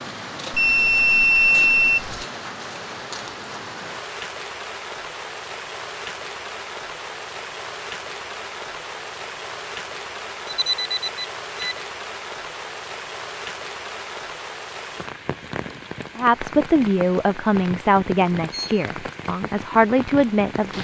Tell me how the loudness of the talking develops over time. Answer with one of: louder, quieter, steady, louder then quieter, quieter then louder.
quieter then louder.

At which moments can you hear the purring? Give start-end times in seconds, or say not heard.
not heard.